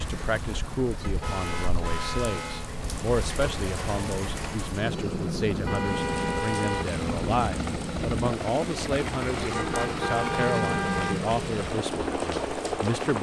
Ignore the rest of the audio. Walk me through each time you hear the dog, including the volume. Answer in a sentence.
You can't hear the dog here.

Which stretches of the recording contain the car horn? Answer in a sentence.
The car horn can be heard from 1.0 to 2.7 s, from 5.7 to 7.0 s and from 9.5 to 11.3 s.